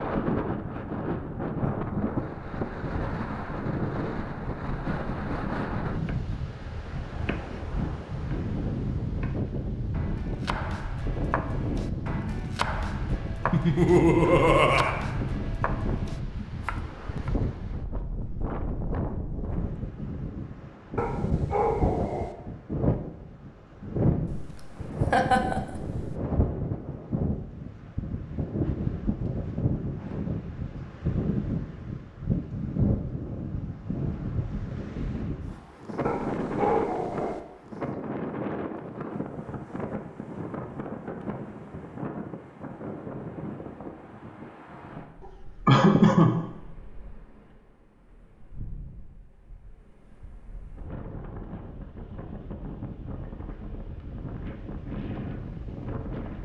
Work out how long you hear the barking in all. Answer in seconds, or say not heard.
3 s.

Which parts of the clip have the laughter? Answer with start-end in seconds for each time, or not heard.
13.5-14.9, 24.2-26.1, 45.2-46.4.